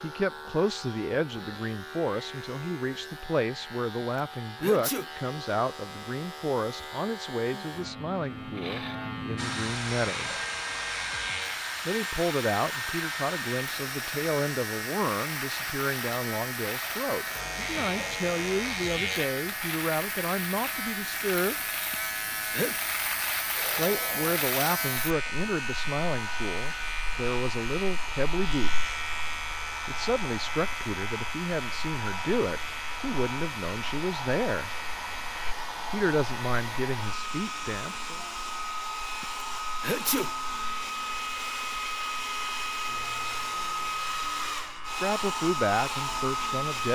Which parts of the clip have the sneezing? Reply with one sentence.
The sneezing can be heard from 4.0 to 5.1 s, from 21.9 to 22.8 s and from 39.2 to 40.3 s.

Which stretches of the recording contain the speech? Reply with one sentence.
You can hear the speech from 0.0 to 10.4 s, from 11.8 to 21.6 s, from 23.8 to 28.9 s, from 29.9 to 34.7 s, from 35.9 to 38.2 s and from 44.9 to 46.9 s.